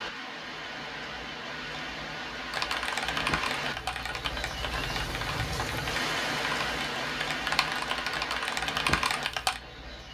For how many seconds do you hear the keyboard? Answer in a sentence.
The keyboard can be heard for 7 seconds in total.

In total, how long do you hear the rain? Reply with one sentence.
You can hear the rain for 10 seconds altogether.